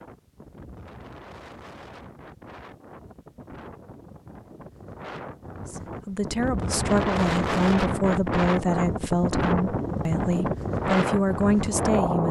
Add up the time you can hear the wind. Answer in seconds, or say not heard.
12 s.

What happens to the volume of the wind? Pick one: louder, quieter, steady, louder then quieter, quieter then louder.
louder.